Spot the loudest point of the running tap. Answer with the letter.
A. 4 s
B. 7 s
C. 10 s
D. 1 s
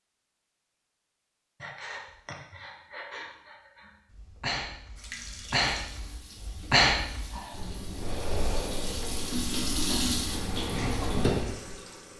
C.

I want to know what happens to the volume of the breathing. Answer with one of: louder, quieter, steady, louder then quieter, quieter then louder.
louder then quieter.